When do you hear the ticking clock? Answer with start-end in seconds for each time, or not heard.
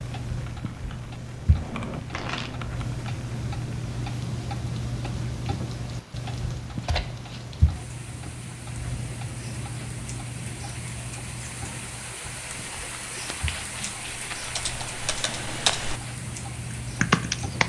0.0-17.6.